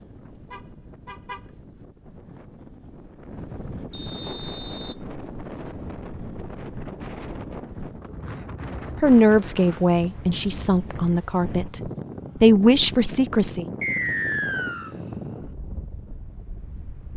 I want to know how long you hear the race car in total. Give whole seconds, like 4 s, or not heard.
not heard.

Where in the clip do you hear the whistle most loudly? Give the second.
14 s.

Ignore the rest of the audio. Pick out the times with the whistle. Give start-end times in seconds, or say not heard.
3.9-5.0, 13.8-14.9.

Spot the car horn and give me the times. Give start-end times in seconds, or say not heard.
0.5-1.5.